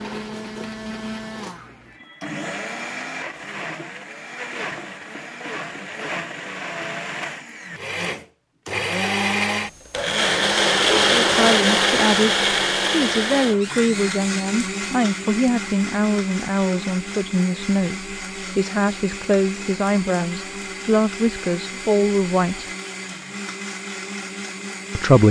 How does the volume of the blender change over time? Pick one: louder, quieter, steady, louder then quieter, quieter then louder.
louder then quieter.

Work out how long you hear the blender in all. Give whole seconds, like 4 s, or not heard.
25 s.